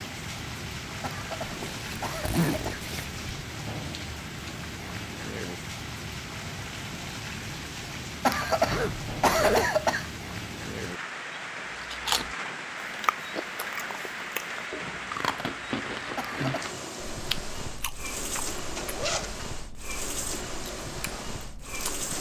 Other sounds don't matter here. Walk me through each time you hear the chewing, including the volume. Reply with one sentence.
The chewing can be heard from 11.8 to 22.1 s, getting quieter.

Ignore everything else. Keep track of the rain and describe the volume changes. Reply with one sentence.
The loudness of the rain stays about the same.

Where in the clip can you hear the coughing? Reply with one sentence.
You can hear the coughing from 1.0 to 2.9 s, from 8.2 to 10.1 s and from 16.1 to 16.8 s.